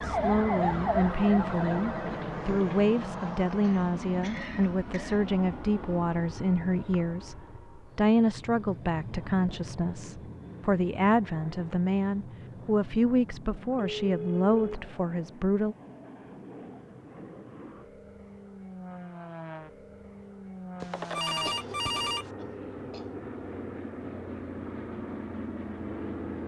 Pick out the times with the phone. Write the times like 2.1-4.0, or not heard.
1.0-2.9, 13.8-14.9, 20.8-22.3.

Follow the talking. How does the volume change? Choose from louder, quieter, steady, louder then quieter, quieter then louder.
steady.